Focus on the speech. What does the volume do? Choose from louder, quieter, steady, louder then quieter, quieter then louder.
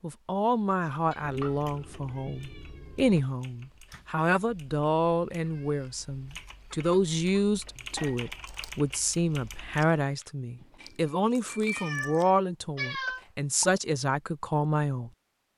steady.